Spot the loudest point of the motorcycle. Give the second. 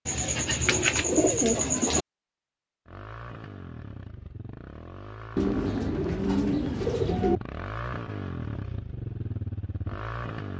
8 s.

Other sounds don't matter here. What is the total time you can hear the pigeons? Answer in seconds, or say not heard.
4 s.